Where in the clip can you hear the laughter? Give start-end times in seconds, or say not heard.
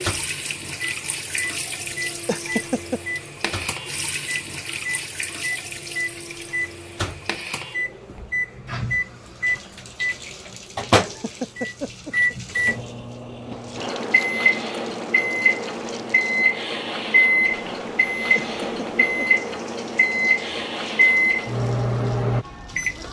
2.2-3.0, 11.0-12.3, 18.4-19.2.